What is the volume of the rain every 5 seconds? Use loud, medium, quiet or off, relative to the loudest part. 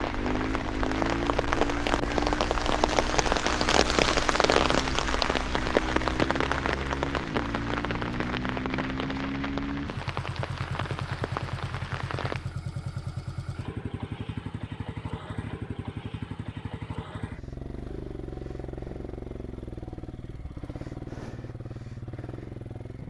loud, loud, medium, off, off.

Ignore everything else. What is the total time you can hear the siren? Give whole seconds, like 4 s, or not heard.
not heard.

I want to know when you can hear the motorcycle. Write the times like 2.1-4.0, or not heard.
0.0-23.0.